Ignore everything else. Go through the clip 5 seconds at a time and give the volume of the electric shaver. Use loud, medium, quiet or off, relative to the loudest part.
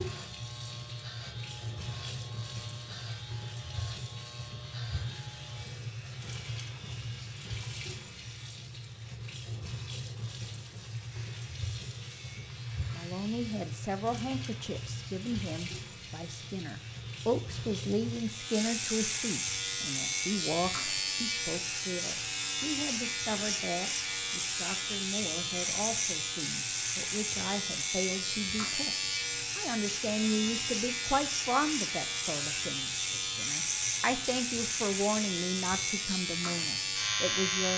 quiet, quiet, quiet, medium, loud, loud, loud, loud.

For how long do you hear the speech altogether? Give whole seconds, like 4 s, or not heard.
24 s.